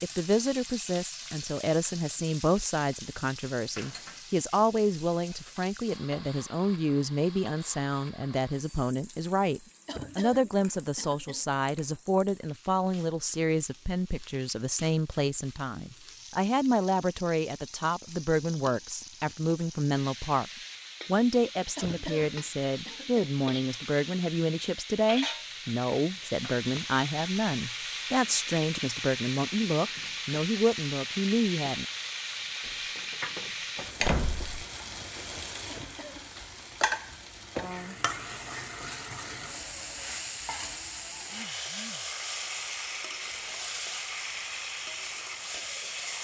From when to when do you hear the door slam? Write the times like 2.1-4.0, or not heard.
32.6-34.6.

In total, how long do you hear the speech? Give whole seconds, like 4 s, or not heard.
31 s.